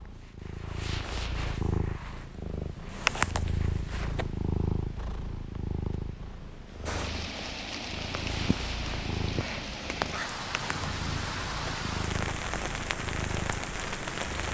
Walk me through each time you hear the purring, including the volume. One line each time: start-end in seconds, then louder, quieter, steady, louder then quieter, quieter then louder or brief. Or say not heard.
0.0-14.4 quieter.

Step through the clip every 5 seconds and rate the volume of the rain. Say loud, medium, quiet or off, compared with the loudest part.
off, loud, loud.